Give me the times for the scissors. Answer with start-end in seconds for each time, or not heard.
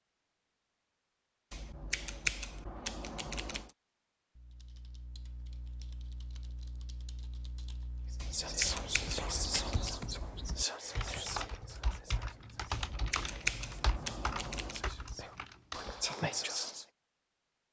1.5-3.8, 8.2-9.9, 12.7-14.8.